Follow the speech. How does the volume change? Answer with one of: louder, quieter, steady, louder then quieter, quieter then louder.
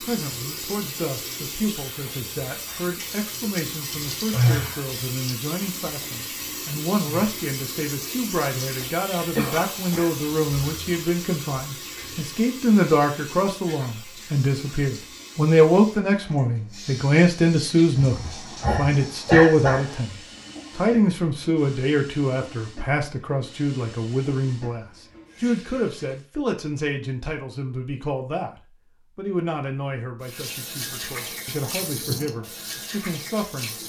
louder then quieter.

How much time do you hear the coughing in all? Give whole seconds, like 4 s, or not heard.
3 s.